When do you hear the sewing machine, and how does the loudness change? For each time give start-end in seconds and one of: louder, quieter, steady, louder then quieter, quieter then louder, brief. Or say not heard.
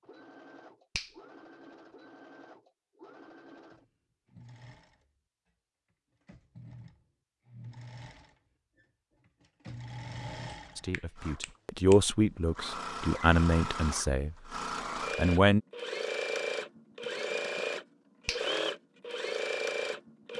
0.0-5.1 steady
6.2-20.3 louder.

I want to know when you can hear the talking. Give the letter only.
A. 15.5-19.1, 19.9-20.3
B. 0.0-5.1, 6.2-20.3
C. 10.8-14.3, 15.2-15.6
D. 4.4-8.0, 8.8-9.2
C.